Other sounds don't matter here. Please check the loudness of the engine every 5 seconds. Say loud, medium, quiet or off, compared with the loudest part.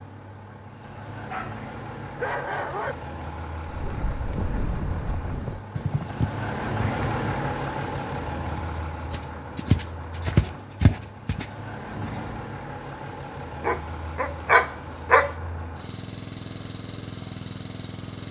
medium, loud, medium, medium.